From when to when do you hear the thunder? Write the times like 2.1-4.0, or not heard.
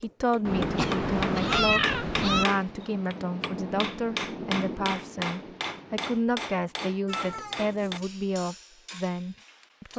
2.5-6.2.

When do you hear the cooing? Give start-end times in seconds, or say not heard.
not heard.